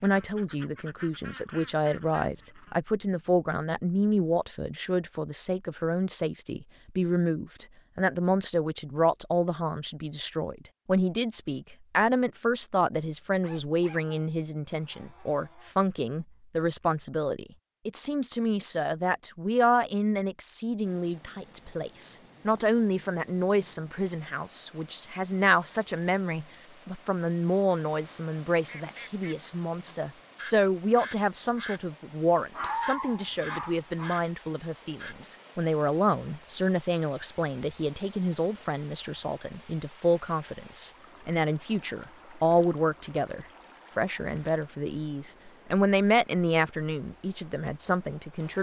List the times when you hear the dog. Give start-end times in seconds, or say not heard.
13.4-15.9, 32.5-34.1.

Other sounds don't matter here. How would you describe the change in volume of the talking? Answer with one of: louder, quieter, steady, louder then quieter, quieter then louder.
steady.